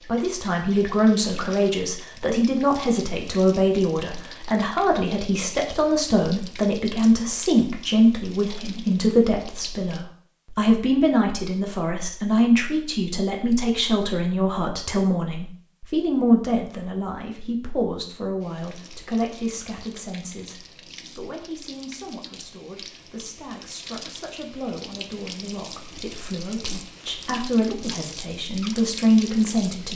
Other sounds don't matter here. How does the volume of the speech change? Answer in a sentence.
The volume of the speech goes down, then up.